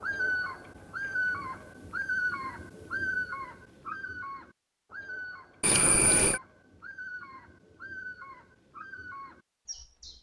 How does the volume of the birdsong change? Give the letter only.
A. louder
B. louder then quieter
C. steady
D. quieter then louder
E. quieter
E.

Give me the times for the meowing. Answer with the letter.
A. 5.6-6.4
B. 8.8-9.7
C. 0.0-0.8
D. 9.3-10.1
A.